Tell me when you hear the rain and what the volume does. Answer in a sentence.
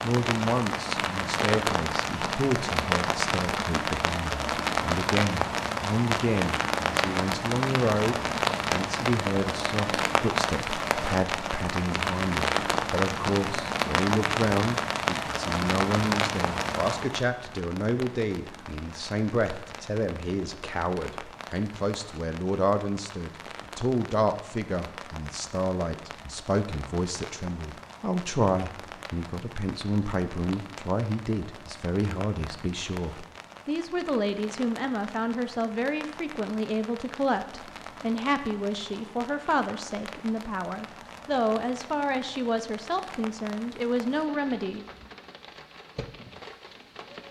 You can hear the rain from 0.0 to 47.2 s, getting quieter.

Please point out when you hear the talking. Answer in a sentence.
You can hear the talking from 0.0 to 44.9 s.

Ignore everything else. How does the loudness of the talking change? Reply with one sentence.
The volume of the talking stays about the same.